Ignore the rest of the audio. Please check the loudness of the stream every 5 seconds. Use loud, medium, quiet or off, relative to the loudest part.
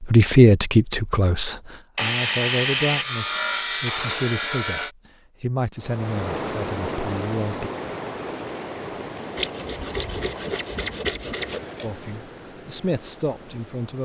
off, loud, medium.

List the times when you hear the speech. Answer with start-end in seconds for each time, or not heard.
0.0-7.7, 11.8-14.0.